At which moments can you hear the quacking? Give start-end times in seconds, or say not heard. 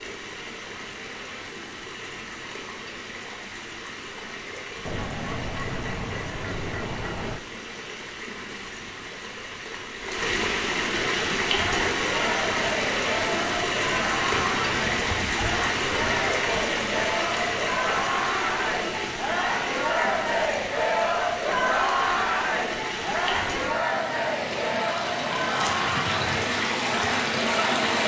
4.8-7.4, 14.3-16.4.